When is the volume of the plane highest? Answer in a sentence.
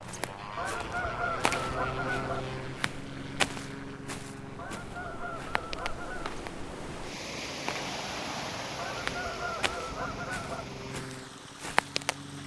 The volume of the plane peaks at 2 seconds.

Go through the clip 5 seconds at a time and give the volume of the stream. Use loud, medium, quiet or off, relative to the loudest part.
medium, loud, medium.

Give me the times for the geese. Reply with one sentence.
You can hear the geese from 0.6 to 2.5 s, from 4.5 to 6.3 s and from 8.8 to 10.8 s.